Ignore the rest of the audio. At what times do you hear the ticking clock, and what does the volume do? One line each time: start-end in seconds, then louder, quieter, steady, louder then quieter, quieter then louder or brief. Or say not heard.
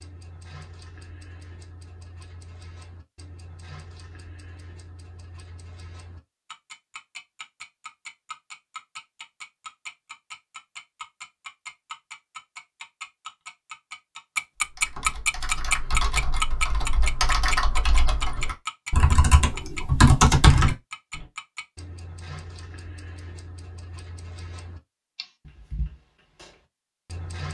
0.0-27.5 louder then quieter.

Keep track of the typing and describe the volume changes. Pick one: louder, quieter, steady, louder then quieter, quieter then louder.
louder.